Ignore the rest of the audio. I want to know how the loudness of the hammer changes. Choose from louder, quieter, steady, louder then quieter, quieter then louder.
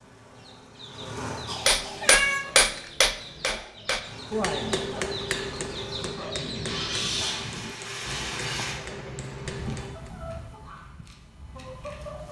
quieter.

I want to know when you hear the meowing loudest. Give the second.
2 s.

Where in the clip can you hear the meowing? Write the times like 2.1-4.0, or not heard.
1.4-2.5, 8.1-9.9.